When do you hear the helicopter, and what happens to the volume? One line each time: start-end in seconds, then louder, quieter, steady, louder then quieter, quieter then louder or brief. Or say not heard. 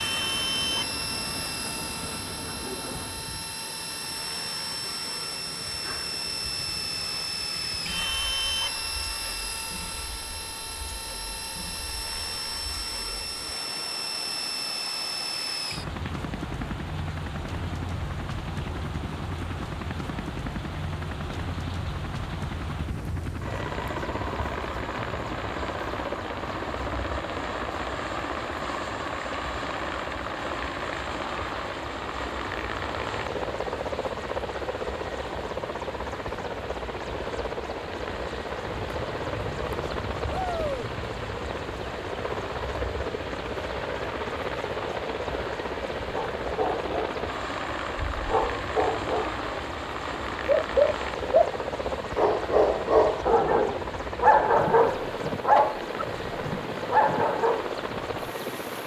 0.0-58.8 steady.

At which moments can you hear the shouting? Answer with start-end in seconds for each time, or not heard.
40.3-40.9.